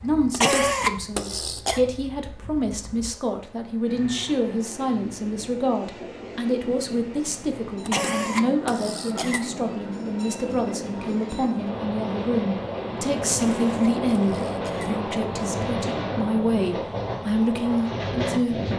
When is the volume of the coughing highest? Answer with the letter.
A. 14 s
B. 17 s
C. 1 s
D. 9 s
C.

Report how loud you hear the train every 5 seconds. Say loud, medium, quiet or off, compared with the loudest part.
quiet, medium, loud, loud.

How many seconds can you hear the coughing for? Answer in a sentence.
The coughing can be heard for 5 seconds in total.